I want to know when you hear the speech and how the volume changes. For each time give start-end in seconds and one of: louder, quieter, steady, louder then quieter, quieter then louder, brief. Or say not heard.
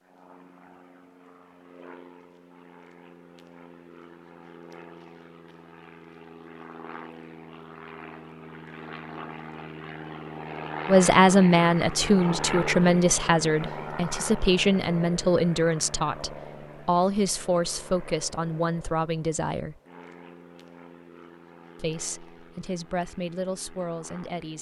10.8-19.8 quieter
21.8-24.5 brief.